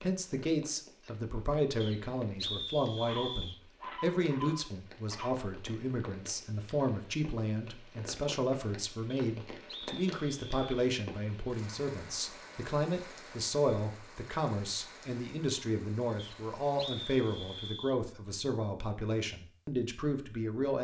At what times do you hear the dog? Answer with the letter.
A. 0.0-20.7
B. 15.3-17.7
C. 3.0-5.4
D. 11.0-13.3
C.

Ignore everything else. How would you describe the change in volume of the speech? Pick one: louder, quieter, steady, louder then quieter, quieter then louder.
steady.